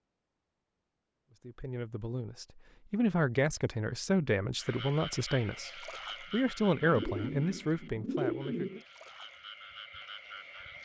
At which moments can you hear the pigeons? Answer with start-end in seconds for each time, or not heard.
6.8-8.8.